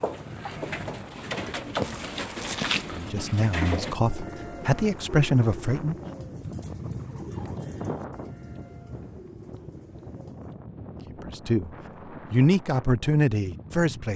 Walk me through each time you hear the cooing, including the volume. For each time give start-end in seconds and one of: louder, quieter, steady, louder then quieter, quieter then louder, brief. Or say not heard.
0.2-10.5 quieter.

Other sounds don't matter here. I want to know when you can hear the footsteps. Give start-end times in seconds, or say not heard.
0.0-3.0.